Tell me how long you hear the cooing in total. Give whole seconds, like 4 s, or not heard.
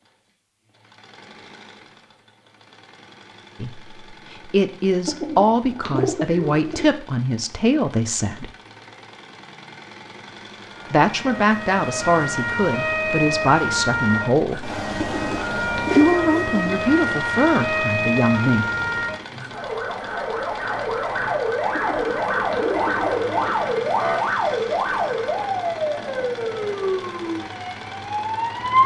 6 s.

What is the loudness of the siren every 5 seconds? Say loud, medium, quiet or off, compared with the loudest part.
off, off, loud, loud, loud, loud.